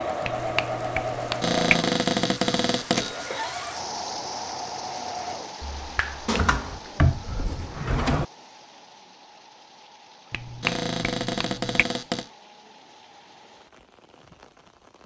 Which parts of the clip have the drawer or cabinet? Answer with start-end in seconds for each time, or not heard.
1.4-3.1, 6.2-8.2, 10.6-12.3.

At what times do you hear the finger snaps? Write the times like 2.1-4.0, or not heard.
0.2-1.8, 5.6-6.5, 10.3-11.8.